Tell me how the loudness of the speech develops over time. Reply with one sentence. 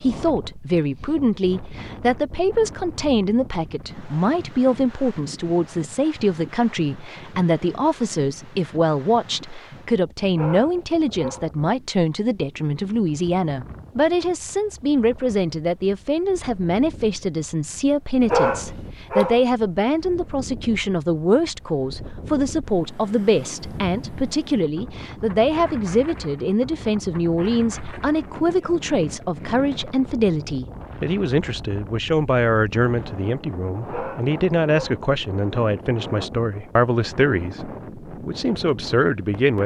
The volume of the speech stays about the same.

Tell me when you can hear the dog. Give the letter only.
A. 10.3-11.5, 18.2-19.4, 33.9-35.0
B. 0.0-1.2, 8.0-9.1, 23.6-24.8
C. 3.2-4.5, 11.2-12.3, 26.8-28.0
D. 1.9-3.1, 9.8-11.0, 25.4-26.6
A.